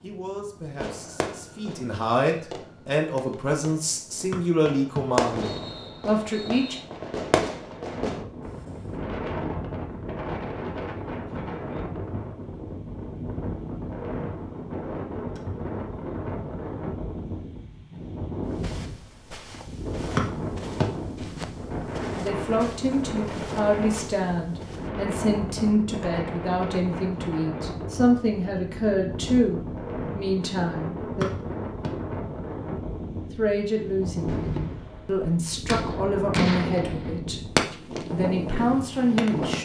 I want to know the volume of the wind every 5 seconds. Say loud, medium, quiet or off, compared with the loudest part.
quiet, loud, loud, loud, loud, loud, loud, loud.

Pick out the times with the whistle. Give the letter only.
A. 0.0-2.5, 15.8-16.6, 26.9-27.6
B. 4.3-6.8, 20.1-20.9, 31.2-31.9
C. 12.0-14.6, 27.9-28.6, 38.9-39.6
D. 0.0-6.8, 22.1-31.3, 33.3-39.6
B.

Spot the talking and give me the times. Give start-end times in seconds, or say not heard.
0.0-6.8, 22.1-31.3, 33.3-39.6.